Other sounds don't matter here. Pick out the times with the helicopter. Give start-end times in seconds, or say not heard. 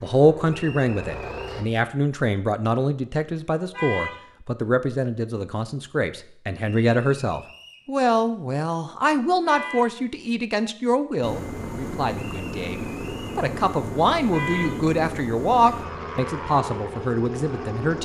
0.0-1.6, 11.2-18.0.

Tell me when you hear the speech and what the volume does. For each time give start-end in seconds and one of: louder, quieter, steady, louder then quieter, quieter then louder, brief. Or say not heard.
0.0-18.0 steady.